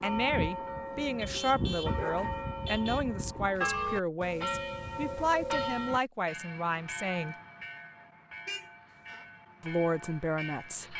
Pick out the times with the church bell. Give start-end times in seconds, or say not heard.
0.0-10.9.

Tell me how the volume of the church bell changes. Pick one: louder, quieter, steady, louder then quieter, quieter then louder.
quieter.